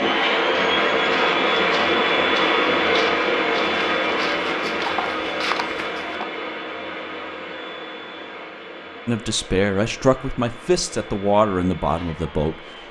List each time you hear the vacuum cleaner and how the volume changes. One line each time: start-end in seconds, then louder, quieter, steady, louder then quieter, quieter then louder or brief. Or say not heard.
0.0-12.8 quieter.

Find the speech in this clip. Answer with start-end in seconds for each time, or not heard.
9.1-12.6.